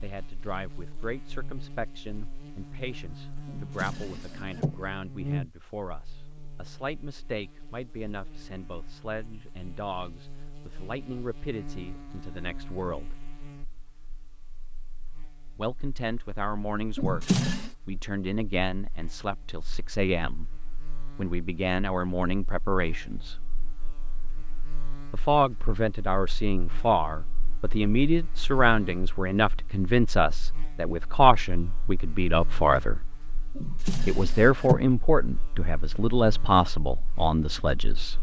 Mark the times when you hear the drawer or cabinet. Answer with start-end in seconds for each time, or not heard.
3.5-4.8, 16.9-17.7, 33.5-34.9.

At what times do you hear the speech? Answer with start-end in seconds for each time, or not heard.
0.0-13.2, 15.6-17.2, 17.9-20.4, 21.1-23.4, 25.1-33.0, 34.0-38.1.